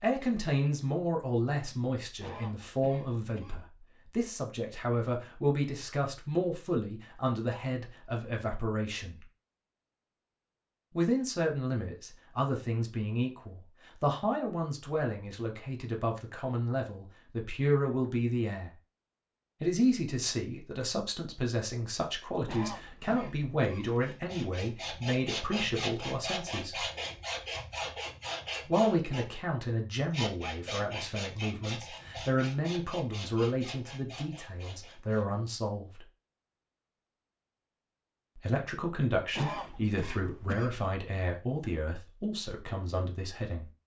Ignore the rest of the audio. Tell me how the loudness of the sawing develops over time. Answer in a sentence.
The loudness of the sawing goes down.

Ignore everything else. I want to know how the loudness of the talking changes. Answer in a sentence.
The volume of the talking stays about the same.